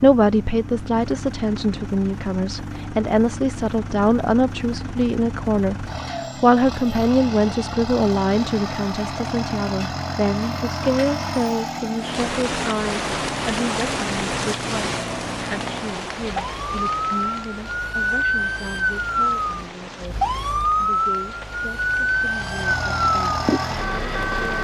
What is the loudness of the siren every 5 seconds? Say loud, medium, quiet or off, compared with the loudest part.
quiet, quiet, quiet, loud, loud.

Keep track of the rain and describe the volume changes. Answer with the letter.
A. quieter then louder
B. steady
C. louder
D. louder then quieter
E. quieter
E.